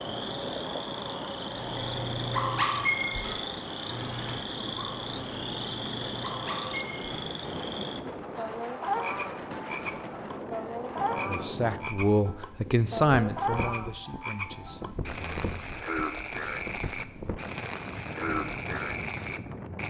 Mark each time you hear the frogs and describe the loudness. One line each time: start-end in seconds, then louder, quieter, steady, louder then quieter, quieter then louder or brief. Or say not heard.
0.0-19.8 steady.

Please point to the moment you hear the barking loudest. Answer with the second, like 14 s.
3 s.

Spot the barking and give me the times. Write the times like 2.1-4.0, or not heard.
1.5-7.3.